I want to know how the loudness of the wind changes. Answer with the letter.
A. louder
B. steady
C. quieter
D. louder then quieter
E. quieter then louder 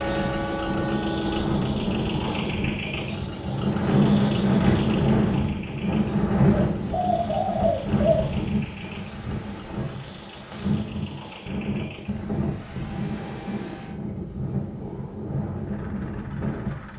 D.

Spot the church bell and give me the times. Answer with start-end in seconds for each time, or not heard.
0.0-1.6.